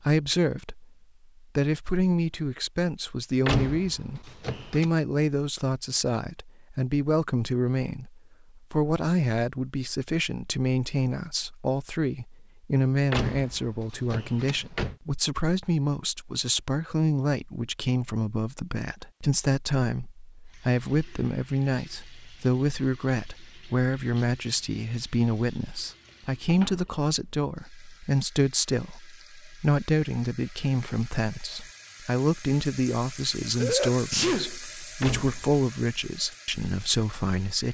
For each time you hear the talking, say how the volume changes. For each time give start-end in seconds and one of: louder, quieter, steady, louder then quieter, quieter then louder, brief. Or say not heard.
0.0-37.6 steady.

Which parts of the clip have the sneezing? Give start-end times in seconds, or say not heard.
33.5-34.5.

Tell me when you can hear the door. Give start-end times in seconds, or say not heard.
3.5-4.9, 13.1-14.9, 35.0-35.6.